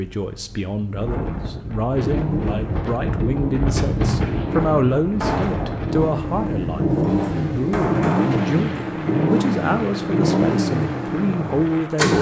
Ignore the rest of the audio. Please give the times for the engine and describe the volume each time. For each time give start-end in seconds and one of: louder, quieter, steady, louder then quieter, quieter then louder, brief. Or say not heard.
1.9-12.1 louder.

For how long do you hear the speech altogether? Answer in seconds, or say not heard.
12 s.